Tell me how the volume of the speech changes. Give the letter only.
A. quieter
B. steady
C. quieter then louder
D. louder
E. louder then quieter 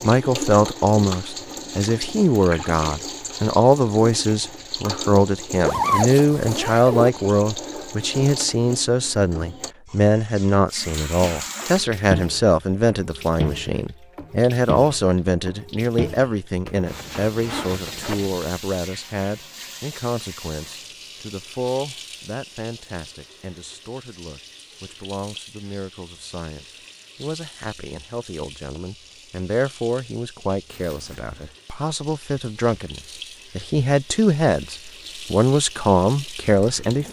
C.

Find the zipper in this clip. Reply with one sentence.
The zipper can be heard from 5.6 to 7.1 s, from 16.6 to 18.4 s and from 30.7 to 31.5 s.